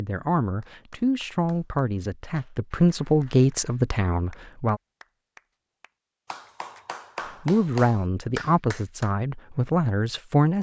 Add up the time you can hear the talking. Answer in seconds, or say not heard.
8 s.